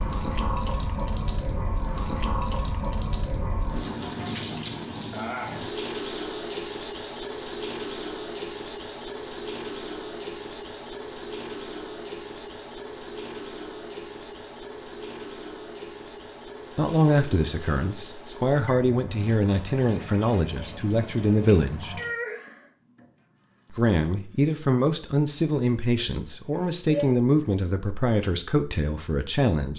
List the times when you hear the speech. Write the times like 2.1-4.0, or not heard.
16.8-21.9, 23.8-29.7.